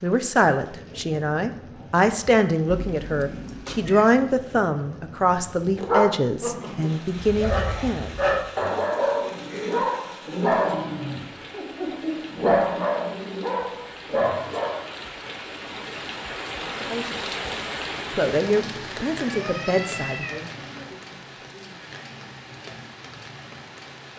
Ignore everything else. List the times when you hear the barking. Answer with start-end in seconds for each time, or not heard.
5.8-14.8.